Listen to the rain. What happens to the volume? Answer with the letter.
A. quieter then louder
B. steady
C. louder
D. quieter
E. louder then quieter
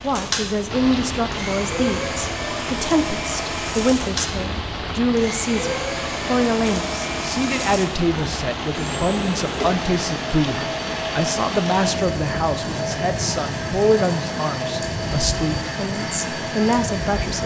B.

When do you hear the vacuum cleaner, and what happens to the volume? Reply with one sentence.
The vacuum cleaner can be heard from 0.0 to 17.4 s, at a steady volume.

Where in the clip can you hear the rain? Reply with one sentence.
You can hear the rain from 0.0 to 17.4 s.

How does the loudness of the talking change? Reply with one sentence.
The volume of the talking stays about the same.